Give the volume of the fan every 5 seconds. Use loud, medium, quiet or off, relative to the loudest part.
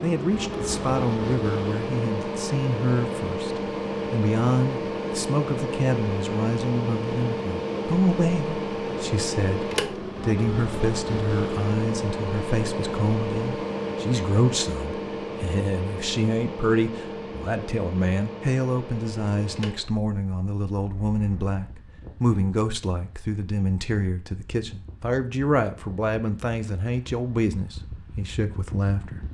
loud, loud, loud, medium, quiet, quiet.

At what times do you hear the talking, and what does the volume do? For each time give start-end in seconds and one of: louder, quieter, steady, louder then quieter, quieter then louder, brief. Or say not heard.
0.0-29.2 steady.